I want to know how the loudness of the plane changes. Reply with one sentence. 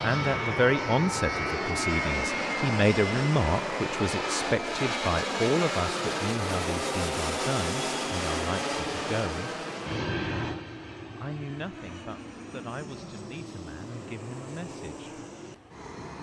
The volume of the plane goes down.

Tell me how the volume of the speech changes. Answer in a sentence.
The loudness of the speech goes down.